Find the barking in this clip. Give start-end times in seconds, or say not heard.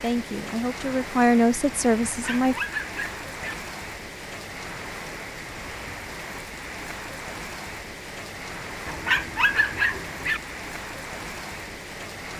2.0-3.5, 8.8-10.4.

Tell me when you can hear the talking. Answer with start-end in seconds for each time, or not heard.
0.0-2.5.